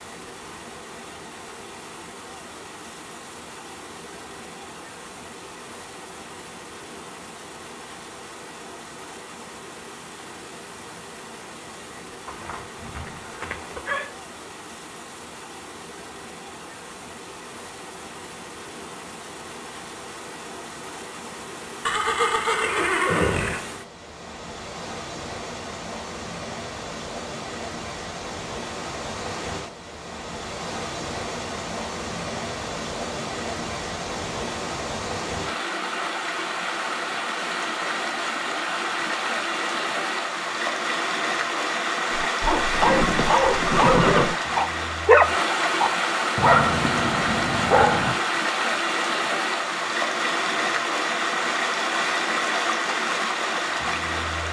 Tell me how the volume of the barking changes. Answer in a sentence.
The volume of the barking goes up, then down.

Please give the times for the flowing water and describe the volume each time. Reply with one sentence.
The flowing water can be heard from 0.0 to 54.4 s, getting louder.